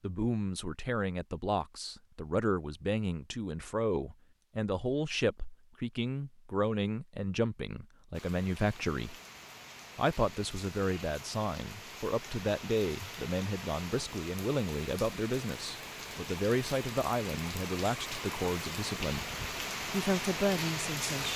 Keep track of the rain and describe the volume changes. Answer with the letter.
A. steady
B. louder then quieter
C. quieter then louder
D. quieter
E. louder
E.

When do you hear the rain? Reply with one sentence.
The rain can be heard from 8.1 to 21.3 s.